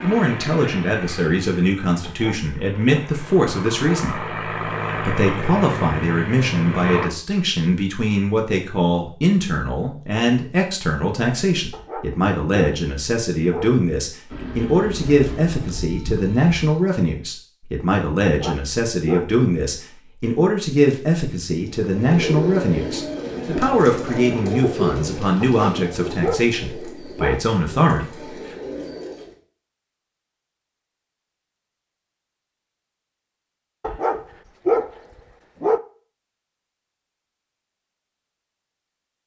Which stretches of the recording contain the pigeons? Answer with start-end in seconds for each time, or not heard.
21.6-29.4.